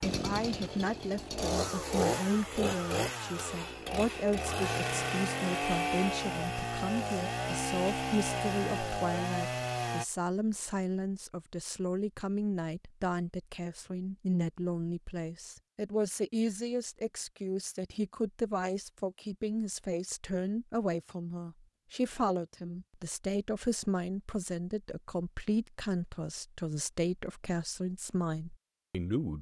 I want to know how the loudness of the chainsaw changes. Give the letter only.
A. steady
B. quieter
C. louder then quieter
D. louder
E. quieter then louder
A.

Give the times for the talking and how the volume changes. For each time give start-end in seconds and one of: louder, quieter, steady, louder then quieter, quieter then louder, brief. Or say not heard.
0.0-29.3 steady.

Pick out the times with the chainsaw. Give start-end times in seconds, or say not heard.
0.0-10.1.